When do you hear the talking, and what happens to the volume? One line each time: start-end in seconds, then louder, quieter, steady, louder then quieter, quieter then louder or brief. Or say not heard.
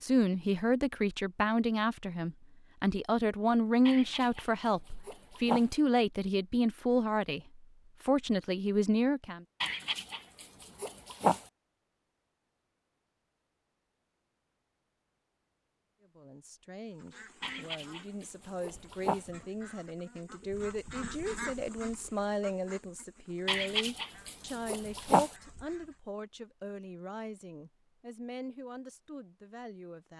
0.0-9.4 steady
16.0-30.1 louder then quieter.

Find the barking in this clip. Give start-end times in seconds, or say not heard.
3.9-5.7, 9.6-11.4, 17.4-19.3, 23.4-25.4.